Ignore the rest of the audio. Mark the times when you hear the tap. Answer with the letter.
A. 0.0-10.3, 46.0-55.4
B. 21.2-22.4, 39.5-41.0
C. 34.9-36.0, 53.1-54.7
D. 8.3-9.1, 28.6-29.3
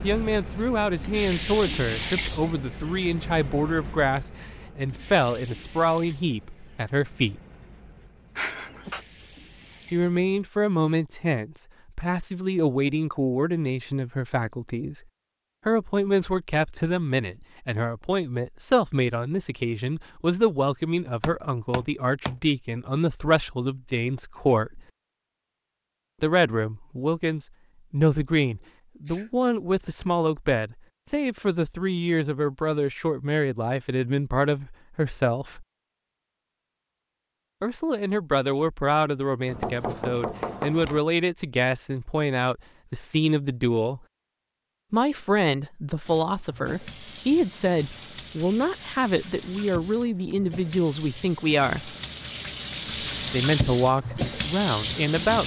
A.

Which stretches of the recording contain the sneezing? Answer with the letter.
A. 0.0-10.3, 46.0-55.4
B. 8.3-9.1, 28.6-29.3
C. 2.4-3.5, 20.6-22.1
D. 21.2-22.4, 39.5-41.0
B.